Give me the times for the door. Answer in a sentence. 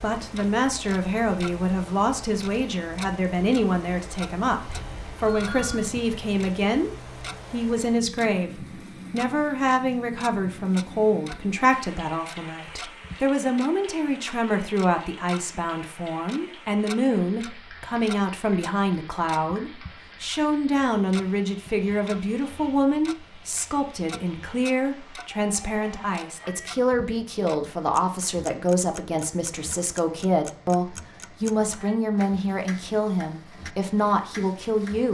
You can't hear the door here.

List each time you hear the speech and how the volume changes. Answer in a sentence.
You can hear the speech from 0.0 to 35.0 s, at a steady volume.